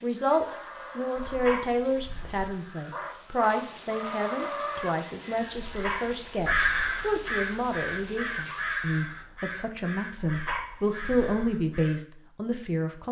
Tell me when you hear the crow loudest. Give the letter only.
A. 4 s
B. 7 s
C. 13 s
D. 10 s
B.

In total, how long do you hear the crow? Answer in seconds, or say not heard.
12 s.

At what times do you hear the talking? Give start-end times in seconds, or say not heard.
0.0-13.0.